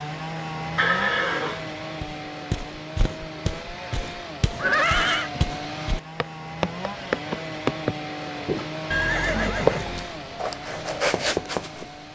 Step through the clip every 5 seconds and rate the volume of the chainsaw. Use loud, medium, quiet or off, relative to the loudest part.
loud, loud, medium.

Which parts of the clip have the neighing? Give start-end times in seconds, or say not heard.
0.8-1.6, 4.5-5.3, 8.9-10.1.